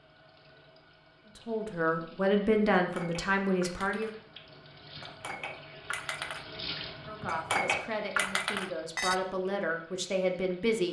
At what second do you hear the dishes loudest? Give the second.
8 s.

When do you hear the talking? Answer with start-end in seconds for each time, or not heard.
1.4-4.1, 7.0-10.8.